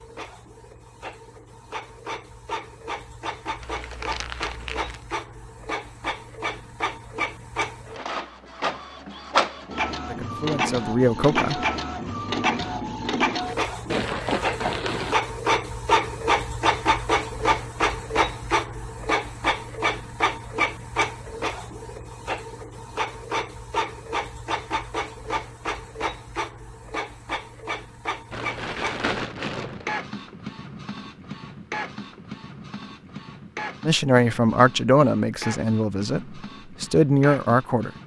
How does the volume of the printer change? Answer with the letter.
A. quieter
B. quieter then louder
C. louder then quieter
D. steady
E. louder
C.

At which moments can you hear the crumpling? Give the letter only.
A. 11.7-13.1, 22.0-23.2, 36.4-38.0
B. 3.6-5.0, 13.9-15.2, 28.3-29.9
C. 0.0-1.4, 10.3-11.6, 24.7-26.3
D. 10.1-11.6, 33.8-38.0
B.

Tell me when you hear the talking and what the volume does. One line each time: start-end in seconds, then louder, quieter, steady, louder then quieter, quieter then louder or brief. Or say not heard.
10.1-11.6 brief
33.8-38.0 quieter then louder.